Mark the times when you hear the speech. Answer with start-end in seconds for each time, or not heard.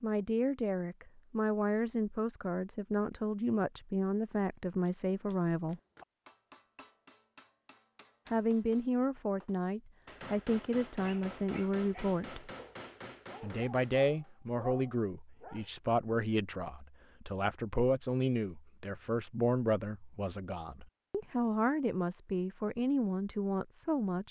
0.0-5.8, 8.3-12.5, 13.4-24.2.